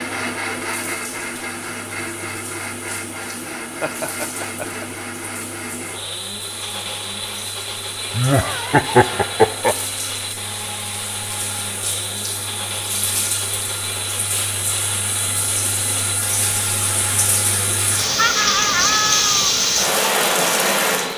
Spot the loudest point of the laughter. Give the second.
9 s.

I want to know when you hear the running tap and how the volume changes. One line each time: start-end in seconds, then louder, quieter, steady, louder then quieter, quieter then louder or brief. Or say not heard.
0.0-21.1 louder.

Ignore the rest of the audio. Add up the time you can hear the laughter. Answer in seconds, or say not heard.
4 s.